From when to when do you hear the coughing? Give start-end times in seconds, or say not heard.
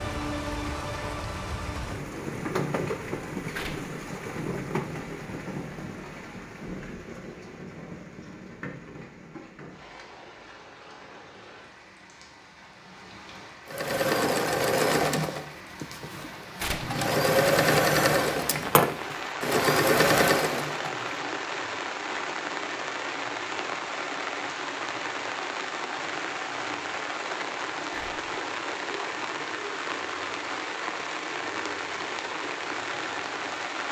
not heard.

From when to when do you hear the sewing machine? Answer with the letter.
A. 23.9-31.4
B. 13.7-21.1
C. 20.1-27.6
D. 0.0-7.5
B.